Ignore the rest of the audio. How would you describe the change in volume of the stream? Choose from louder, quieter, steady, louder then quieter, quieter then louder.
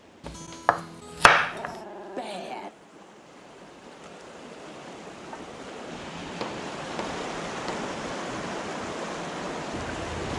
louder.